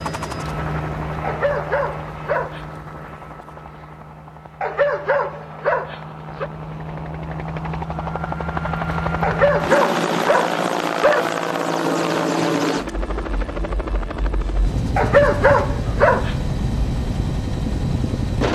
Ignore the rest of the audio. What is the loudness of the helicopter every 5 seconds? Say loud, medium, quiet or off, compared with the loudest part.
medium, loud, loud, loud.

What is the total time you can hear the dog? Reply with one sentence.
The dog can be heard for 7 seconds in total.